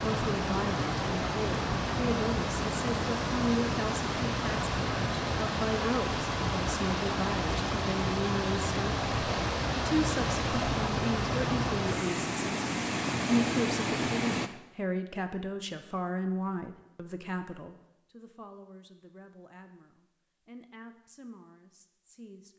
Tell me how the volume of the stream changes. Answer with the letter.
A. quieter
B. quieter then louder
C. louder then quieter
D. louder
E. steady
E.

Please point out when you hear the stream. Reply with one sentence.
The stream can be heard from 0.0 to 14.5 s.